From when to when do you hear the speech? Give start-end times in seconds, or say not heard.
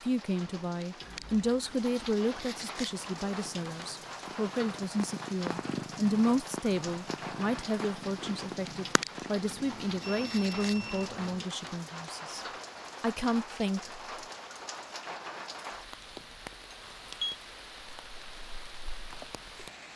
0.0-14.0.